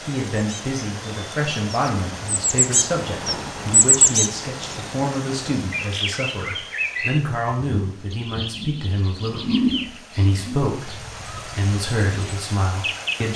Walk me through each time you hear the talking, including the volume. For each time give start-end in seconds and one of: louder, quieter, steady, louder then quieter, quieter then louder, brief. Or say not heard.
0.0-13.3 steady.